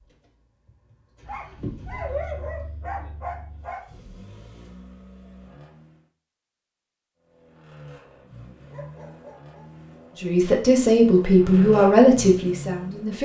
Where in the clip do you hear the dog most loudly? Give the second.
2 s.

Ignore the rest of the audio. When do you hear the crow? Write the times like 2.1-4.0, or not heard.
not heard.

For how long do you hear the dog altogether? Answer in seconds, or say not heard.
4 s.